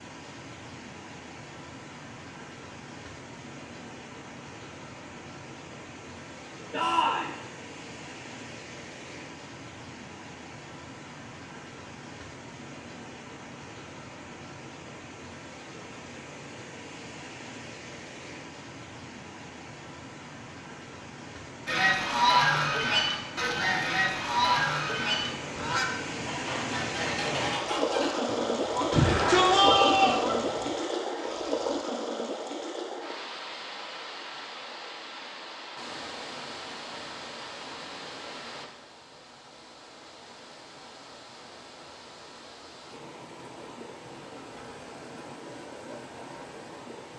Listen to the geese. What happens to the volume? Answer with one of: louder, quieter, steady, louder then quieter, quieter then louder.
quieter.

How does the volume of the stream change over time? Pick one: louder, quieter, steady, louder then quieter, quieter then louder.
louder then quieter.